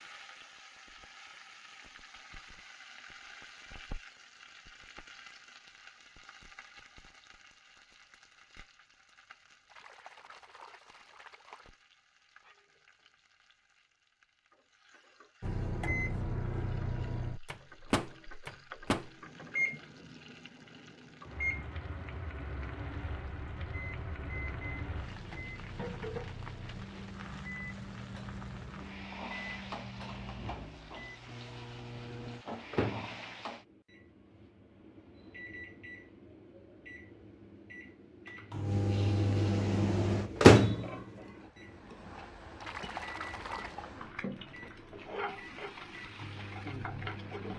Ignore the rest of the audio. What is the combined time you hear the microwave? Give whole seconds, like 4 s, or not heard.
32 s.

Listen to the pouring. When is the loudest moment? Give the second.
43 s.